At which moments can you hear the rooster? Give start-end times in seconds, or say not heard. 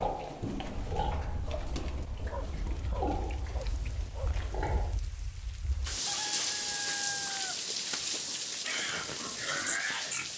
6.0-7.7.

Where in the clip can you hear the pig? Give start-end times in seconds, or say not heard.
0.0-5.0, 8.7-10.3.